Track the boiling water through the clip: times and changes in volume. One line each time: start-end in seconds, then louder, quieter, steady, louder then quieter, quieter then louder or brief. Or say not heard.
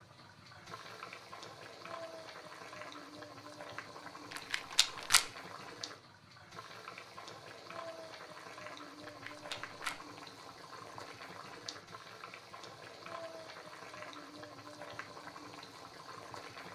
0.0-16.7 steady.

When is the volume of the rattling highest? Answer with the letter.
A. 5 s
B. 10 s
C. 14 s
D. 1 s
A.